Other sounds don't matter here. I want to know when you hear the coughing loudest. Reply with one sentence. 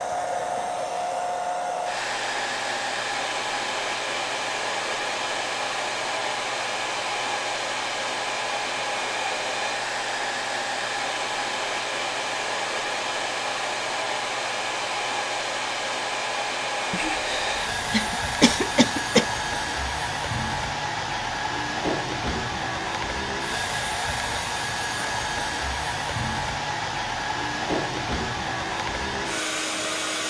The volume of the coughing peaks at 19 seconds.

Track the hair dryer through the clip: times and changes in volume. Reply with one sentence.
You can hear the hair dryer from 0.0 to 30.2 s, at a steady volume.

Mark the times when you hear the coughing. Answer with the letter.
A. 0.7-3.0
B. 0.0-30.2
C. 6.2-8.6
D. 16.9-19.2
D.